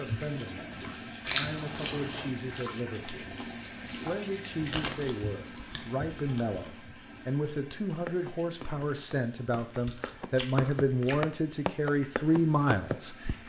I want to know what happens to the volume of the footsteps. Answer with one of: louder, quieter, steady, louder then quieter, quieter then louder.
louder.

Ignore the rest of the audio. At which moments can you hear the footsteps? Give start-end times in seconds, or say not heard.
8.1-13.3.